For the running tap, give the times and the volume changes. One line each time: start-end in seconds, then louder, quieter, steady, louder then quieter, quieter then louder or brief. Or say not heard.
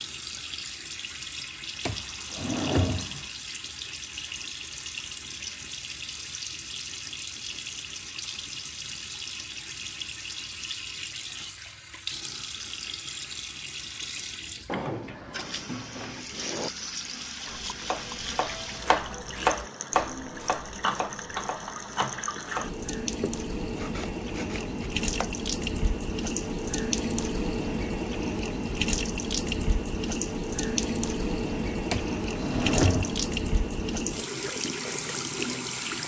0.0-36.0 louder.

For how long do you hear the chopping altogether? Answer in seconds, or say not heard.
8 s.